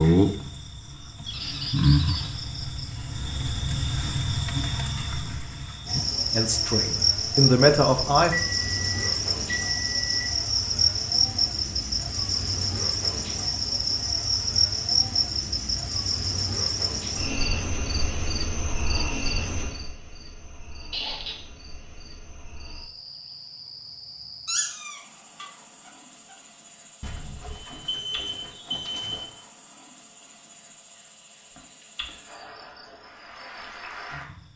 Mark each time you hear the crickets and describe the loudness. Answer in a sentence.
The crickets can be heard from 0.0 to 34.5 s, getting quieter.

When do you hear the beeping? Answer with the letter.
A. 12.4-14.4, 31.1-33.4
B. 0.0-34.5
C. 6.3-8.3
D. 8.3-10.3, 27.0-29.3
D.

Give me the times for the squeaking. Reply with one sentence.
You can hear the squeaking from 1.2 to 2.4 s, from 20.9 to 21.4 s and from 24.4 to 25.4 s.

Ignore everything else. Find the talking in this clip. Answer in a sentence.
You can hear the talking from 6.3 to 8.3 s.